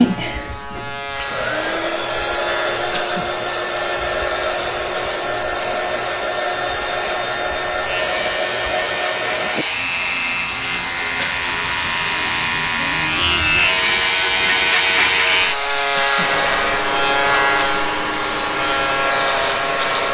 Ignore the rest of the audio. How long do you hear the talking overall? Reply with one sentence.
The talking can't be heard in this clip.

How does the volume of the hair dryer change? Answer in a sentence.
The volume of the hair dryer stays about the same.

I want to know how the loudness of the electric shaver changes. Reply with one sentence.
The loudness of the electric shaver goes up.